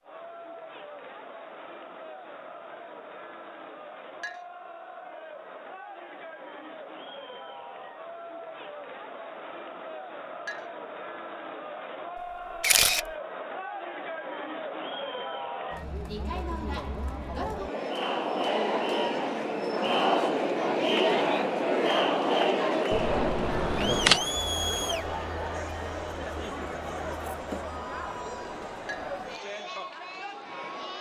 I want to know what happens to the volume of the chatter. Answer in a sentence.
The volume of the chatter goes up, then down.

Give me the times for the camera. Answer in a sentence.
You can hear the camera from 12.6 to 13.1 s and from 22.9 to 24.2 s.